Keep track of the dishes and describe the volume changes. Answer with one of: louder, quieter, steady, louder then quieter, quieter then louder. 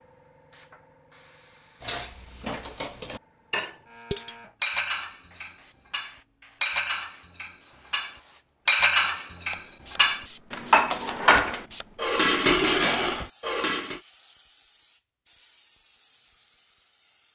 louder.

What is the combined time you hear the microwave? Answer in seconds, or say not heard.
not heard.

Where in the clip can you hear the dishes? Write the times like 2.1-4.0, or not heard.
1.8-14.0.